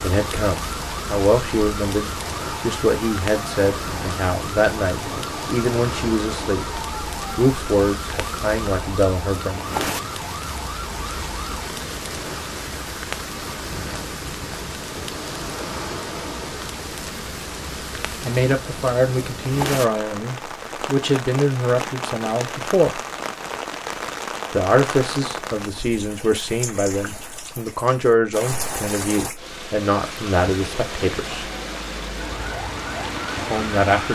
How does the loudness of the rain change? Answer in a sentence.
The loudness of the rain stays about the same.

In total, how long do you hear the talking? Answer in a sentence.
You can hear the talking for 22 seconds altogether.